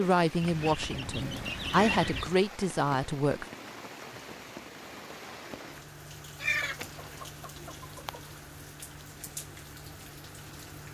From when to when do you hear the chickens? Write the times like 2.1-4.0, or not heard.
0.4-2.4, 6.4-8.2.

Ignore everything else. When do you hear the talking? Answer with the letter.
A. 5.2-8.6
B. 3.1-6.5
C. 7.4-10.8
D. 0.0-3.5
D.